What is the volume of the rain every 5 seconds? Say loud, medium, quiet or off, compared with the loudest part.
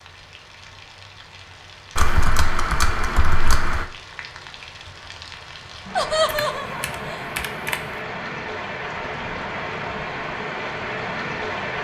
quiet, loud, loud.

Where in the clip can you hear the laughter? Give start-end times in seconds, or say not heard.
6.0-7.2.